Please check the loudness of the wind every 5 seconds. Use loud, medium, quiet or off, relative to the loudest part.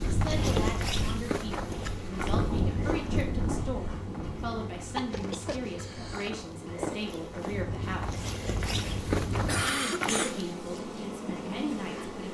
loud, medium, off.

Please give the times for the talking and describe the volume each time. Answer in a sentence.
The talking can be heard from 0.1 to 8.2 s, at a steady volume; and briefly from 10.1 to 12.2 s.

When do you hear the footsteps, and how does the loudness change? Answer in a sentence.
The footsteps can be heard from 0.0 to 10.6 s, getting quieter then louder.